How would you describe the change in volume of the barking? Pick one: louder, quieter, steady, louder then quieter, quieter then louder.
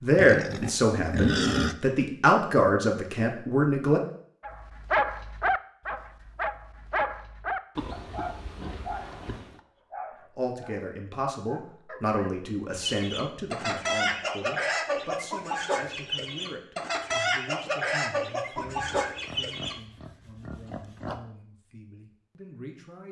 quieter.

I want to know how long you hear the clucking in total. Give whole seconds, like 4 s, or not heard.
7 s.